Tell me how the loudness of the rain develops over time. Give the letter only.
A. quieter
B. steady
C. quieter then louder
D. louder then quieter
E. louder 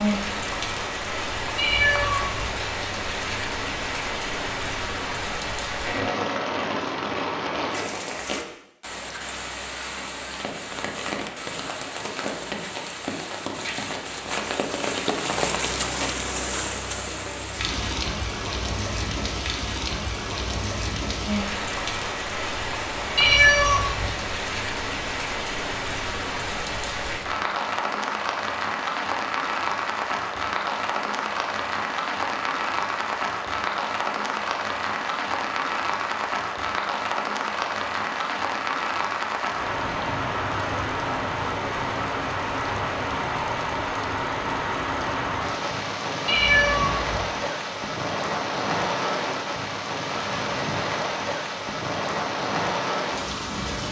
B.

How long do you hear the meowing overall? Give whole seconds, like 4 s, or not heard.
3 s.